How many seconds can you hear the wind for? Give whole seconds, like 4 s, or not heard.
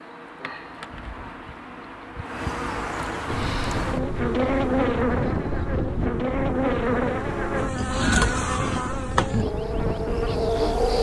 8 s.